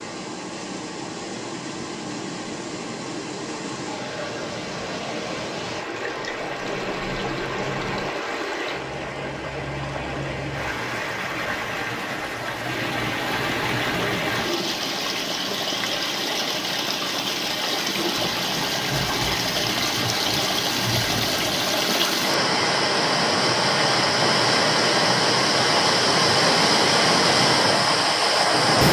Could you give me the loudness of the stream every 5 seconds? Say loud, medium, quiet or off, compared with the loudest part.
quiet, medium, medium, medium, loud, loud.